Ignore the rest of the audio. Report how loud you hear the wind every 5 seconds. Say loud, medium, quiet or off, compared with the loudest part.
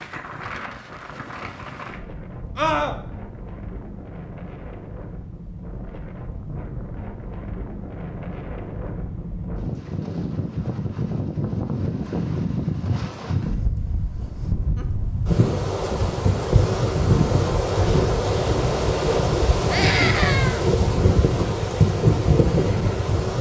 quiet, quiet, medium, loud, loud.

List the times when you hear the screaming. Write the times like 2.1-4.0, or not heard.
2.5-3.0, 19.7-20.6.